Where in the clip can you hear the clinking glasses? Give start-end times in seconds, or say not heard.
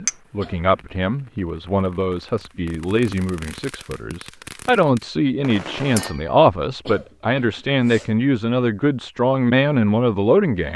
6.0-6.4.